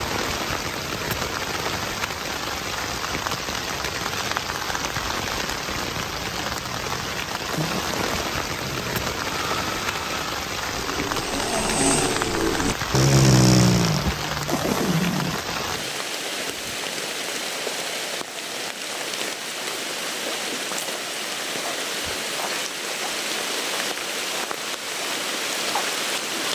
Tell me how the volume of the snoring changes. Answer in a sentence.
The volume of the snoring goes up, then down.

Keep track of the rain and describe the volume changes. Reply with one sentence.
The loudness of the rain stays about the same.